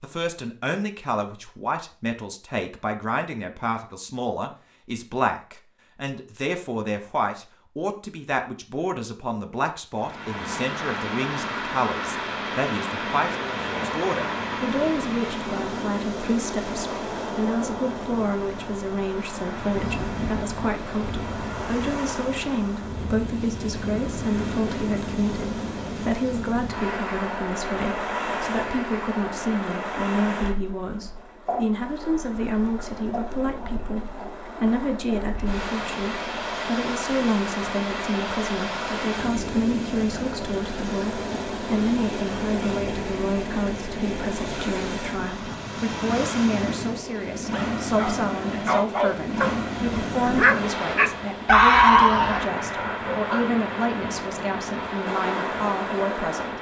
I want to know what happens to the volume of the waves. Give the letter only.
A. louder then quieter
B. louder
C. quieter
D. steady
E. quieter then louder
D.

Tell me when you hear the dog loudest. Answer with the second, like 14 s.
52 s.